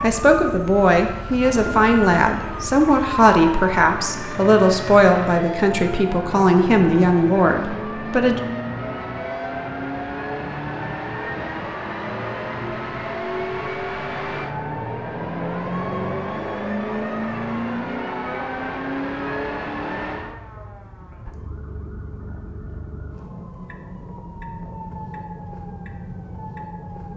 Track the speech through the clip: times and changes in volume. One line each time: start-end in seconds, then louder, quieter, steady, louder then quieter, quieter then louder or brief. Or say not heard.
0.0-8.4 steady.